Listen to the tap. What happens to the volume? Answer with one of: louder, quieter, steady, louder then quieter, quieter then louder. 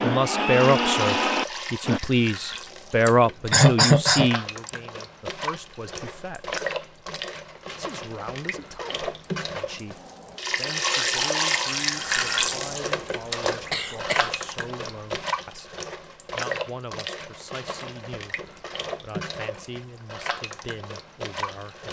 louder then quieter.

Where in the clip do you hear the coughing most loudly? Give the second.
4 s.